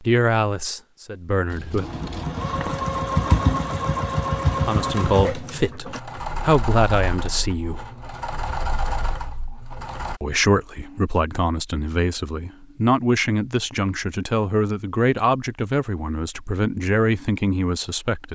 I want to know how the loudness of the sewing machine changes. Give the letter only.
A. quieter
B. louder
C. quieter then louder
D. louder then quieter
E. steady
A.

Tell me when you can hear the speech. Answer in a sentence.
The speech can be heard from 0.0 to 1.9 s, from 4.6 to 7.8 s and from 10.2 to 18.3 s.